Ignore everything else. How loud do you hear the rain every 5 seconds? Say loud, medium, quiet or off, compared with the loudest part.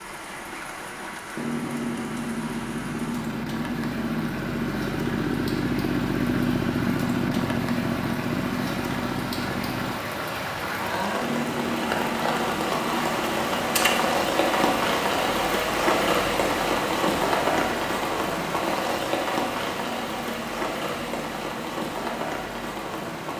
quiet, medium, loud, loud, medium.